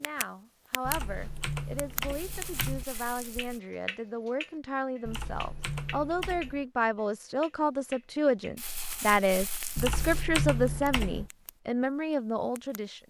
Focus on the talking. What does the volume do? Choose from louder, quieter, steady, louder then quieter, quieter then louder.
louder.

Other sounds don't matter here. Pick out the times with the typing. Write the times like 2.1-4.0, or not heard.
0.8-2.9, 5.0-6.7, 9.8-11.3.